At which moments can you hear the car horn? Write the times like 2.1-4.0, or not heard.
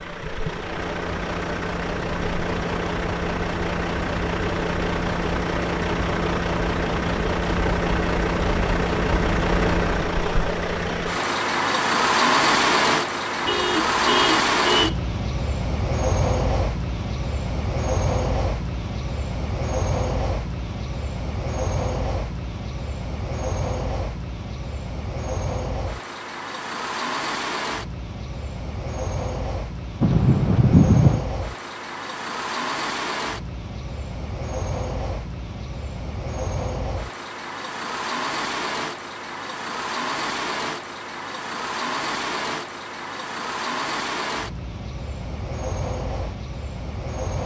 13.4-15.1, 30.0-31.2.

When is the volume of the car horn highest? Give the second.
31 s.